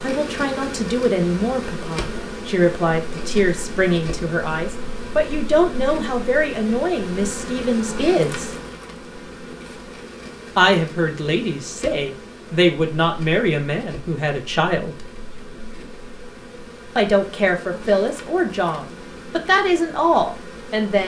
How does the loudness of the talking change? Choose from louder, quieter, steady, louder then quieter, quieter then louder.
steady.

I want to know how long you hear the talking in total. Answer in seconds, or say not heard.
17 s.